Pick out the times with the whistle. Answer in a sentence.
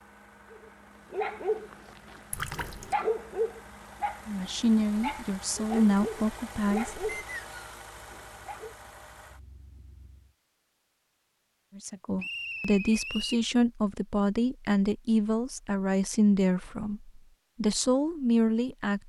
The whistle can be heard from 7.0 to 7.8 s and from 12.2 to 13.4 s.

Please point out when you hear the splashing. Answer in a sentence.
The splashing can be heard from 2.3 to 3.0 s.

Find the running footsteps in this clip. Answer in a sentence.
The running footsteps can't be heard in this clip.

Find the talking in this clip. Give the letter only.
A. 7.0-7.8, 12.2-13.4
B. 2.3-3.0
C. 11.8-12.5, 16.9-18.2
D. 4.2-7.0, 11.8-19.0
D.